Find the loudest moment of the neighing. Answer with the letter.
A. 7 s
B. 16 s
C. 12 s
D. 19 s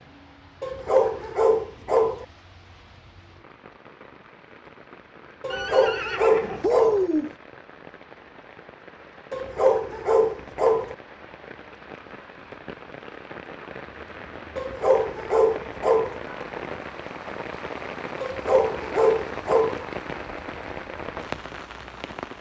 A.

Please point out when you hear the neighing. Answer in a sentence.
You can hear the neighing from 5.5 to 7.3 s.